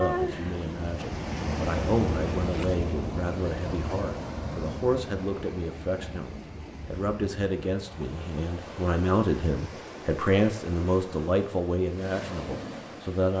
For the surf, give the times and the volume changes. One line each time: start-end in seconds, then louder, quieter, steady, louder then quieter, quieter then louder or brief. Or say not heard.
0.0-13.3 quieter.